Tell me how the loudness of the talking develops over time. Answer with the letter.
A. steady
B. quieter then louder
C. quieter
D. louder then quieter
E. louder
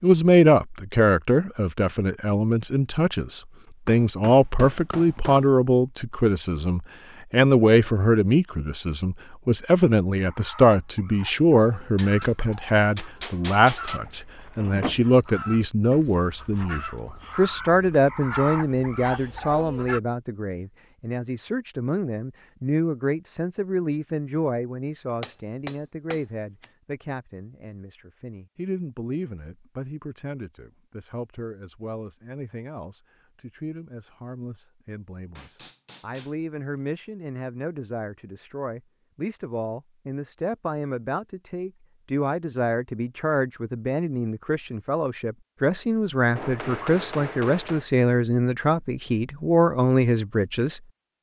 B.